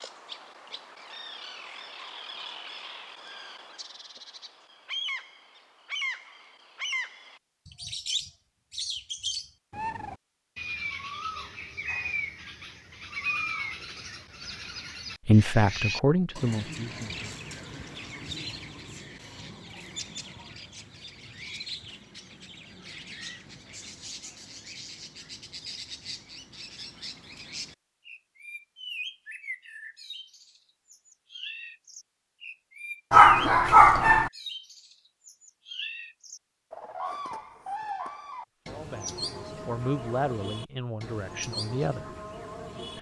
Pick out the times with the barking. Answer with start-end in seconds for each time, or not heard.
33.1-34.3.